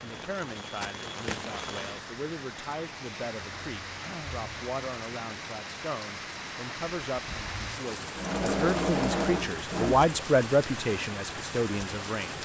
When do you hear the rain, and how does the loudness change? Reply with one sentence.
You can hear the rain from 0.0 to 12.4 s, at a steady volume.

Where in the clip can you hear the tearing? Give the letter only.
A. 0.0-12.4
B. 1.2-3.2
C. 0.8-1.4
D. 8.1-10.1
C.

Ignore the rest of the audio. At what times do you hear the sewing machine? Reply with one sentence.
The sewing machine can be heard from 8.1 to 10.1 s.